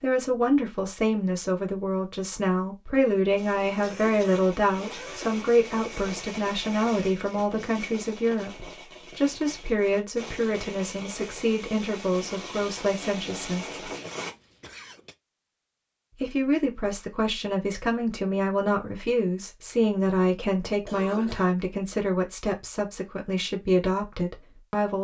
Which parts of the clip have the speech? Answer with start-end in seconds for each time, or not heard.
0.0-13.8, 16.1-24.9.